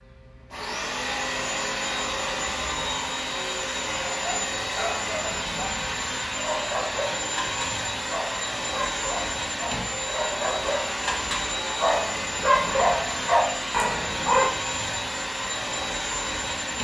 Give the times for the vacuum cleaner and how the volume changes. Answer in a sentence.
The vacuum cleaner can be heard from 0.0 to 16.8 s, at a steady volume.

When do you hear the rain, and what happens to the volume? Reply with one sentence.
You can't hear the rain here.